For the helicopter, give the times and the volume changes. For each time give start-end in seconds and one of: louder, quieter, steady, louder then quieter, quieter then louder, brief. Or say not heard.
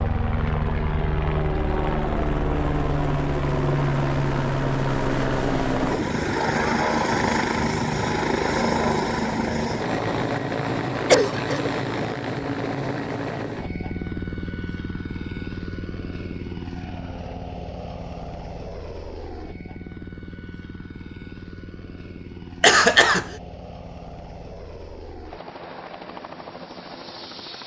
0.0-27.6 quieter.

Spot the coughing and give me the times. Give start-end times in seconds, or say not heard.
11.1-11.7, 22.6-23.2.